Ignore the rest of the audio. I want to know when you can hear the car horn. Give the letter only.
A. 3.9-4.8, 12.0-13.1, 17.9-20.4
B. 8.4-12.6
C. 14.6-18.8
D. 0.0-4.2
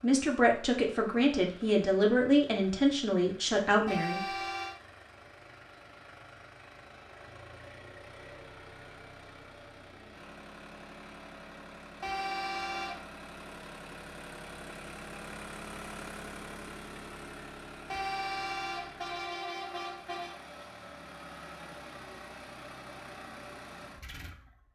A.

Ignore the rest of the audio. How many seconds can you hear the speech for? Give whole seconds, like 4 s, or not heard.
4 s.